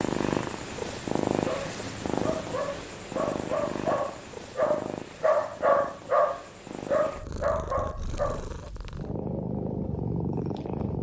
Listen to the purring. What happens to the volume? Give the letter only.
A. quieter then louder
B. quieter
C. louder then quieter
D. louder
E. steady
A.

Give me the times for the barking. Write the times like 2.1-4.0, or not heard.
1.4-8.7.